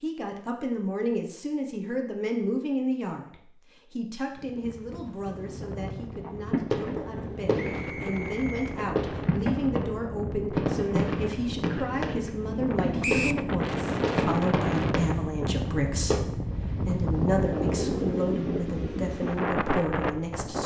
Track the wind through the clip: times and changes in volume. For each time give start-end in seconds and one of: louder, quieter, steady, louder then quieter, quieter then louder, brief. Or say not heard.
4.3-20.6 louder.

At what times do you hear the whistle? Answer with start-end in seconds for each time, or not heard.
7.5-8.8, 13.0-13.4.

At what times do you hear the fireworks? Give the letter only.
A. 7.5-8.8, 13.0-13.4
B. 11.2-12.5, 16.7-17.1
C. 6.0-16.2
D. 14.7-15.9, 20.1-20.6
C.